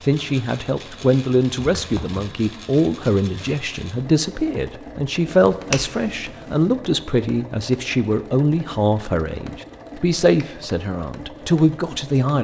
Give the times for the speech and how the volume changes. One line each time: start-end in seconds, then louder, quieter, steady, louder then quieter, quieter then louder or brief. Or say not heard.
0.0-12.3 steady.